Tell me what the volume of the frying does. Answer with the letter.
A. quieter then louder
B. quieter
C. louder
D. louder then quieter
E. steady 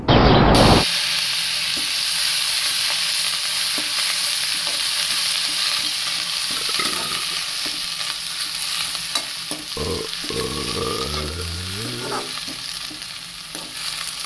B.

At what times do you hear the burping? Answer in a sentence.
You can hear the burping from 0.1 to 0.8 s, from 6.5 to 7.7 s and from 9.8 to 12.3 s.